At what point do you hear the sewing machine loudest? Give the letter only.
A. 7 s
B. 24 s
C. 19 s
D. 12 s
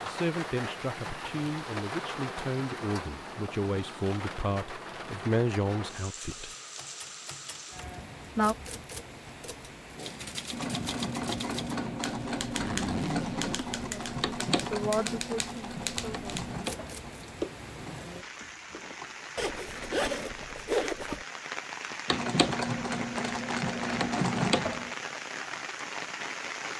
B.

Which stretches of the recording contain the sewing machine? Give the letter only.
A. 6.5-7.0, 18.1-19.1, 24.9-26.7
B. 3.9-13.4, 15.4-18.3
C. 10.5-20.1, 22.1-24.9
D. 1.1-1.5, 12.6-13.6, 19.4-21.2
C.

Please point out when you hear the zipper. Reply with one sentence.
The zipper can be heard from 1.1 to 1.5 s, from 12.6 to 13.6 s and from 19.4 to 21.2 s.